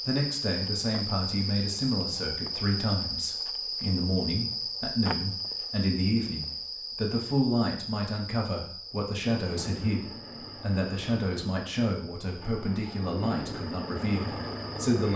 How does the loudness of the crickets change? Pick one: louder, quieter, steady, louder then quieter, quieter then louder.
quieter.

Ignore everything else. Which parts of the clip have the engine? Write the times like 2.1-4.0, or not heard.
9.3-15.1.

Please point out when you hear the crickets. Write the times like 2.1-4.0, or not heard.
0.0-15.1.